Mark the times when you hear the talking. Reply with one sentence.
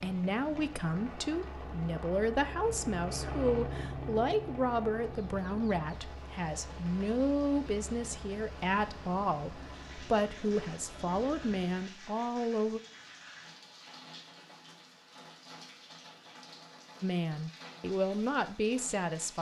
The talking can be heard from 0.0 to 12.8 s and from 17.0 to 19.3 s.